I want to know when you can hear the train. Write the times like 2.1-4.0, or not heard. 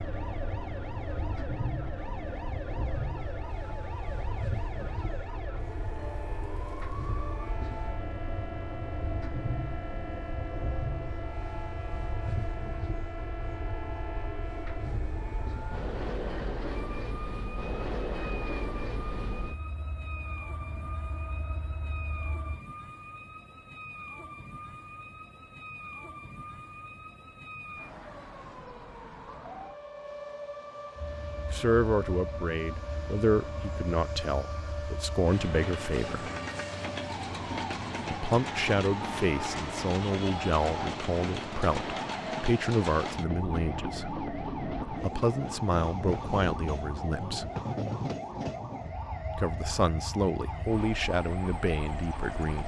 0.0-22.6, 30.9-52.6.